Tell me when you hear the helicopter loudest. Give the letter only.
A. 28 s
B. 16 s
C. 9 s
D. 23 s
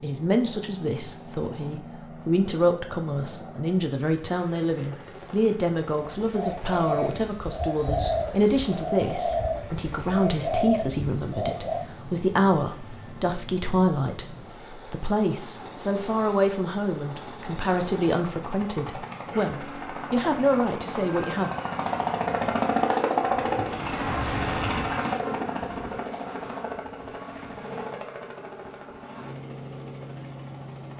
D.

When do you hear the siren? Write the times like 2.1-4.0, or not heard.
not heard.